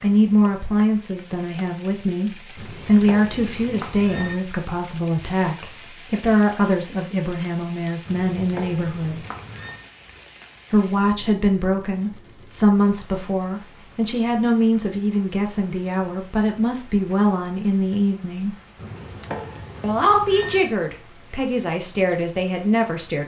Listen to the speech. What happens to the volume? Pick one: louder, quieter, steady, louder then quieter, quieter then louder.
steady.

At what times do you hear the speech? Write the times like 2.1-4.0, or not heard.
0.0-9.2, 10.7-18.6, 19.8-23.2.